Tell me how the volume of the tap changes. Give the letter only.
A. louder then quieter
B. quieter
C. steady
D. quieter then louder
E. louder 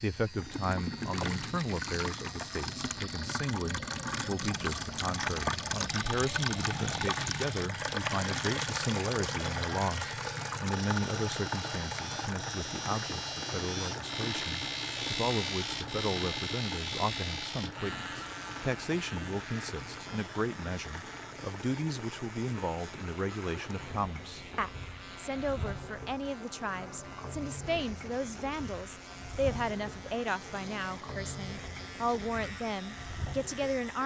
B.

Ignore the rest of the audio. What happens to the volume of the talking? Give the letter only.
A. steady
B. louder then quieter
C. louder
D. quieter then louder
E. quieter
A.